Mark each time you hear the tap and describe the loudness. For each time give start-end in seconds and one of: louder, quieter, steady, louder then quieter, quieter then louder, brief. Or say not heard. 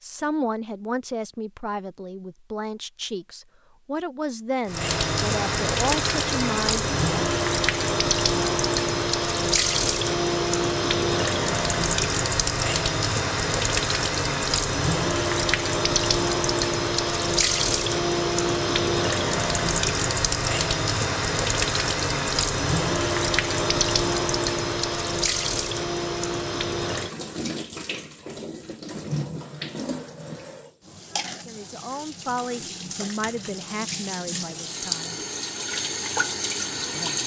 4.7-37.2 quieter.